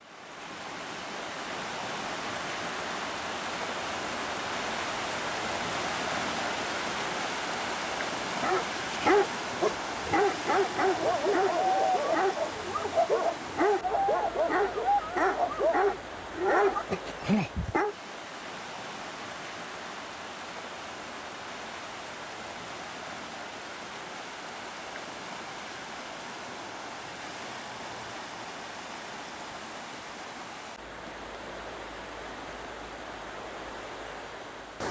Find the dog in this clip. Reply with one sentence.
You can hear the dog from 8.4 to 17.9 s.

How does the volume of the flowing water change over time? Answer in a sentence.
The volume of the flowing water goes down.